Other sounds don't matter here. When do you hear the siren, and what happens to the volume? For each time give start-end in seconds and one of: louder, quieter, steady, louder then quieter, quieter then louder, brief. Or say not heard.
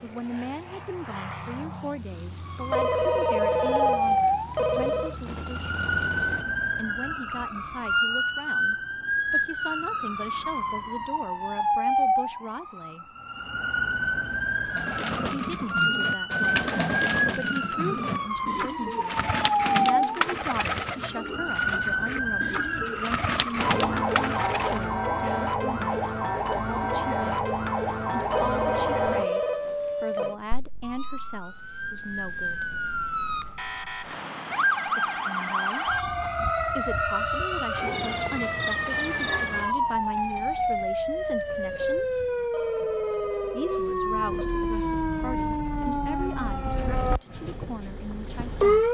2.5-48.8 steady.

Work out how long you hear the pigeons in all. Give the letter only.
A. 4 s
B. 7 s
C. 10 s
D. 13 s
C.